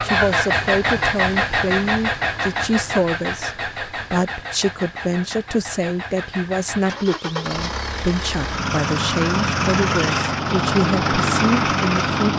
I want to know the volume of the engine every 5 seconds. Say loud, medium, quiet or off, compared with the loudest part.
loud, medium, loud.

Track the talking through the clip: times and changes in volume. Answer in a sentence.
The talking can be heard from 0.0 to 12.2 s, at a steady volume.